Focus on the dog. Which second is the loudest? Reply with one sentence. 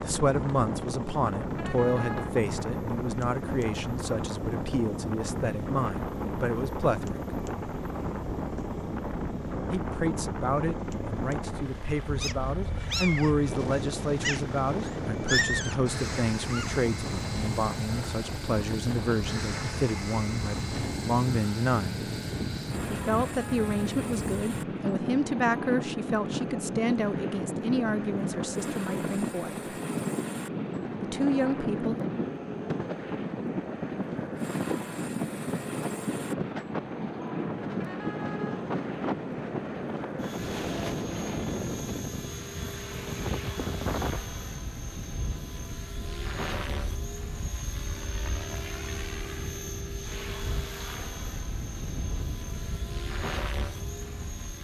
The volume of the dog peaks at 15 seconds.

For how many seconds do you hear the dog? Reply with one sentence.
You can hear the dog for 5 seconds altogether.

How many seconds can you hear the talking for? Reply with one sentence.
You can hear the talking for 27 seconds altogether.